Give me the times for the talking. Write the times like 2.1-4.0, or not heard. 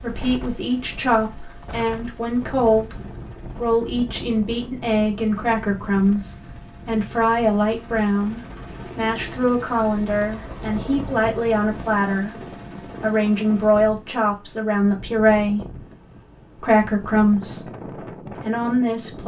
0.0-3.0, 3.5-15.7, 16.6-19.2.